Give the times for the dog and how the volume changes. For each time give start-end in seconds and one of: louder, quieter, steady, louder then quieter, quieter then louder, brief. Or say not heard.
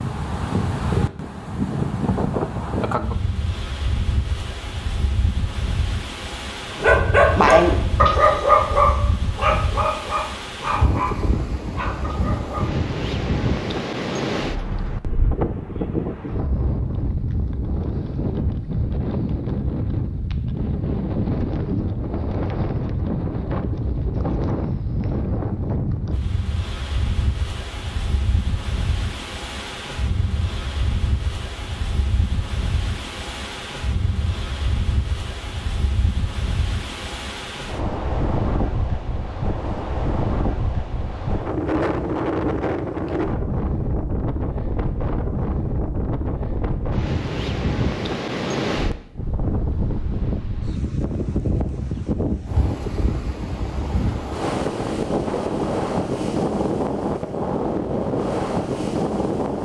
6.8-12.7 quieter.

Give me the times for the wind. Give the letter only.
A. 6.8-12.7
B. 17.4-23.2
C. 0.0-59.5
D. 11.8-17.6
C.